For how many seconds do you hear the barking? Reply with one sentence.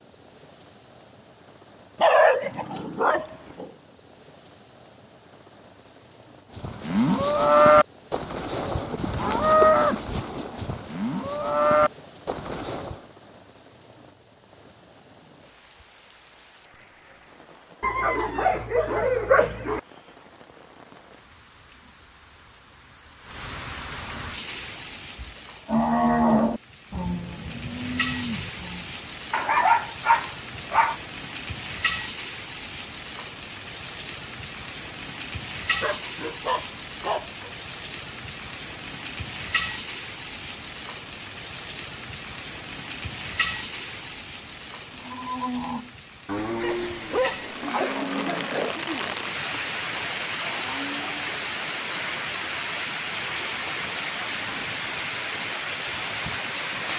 The barking can be heard for 9 seconds in total.